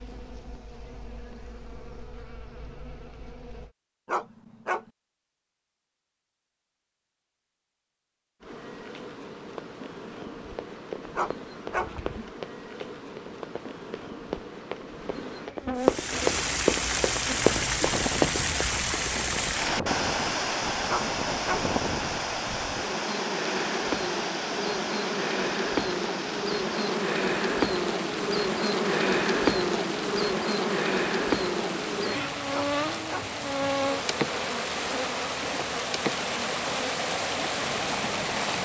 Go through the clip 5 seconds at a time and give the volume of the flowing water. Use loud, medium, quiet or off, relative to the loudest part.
off, off, off, loud, loud, medium, medium, loud.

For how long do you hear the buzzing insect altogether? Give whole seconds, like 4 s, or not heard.
34 s.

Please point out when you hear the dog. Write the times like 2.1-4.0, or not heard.
4.0-4.9, 11.2-11.9, 20.9-21.7, 32.5-33.4.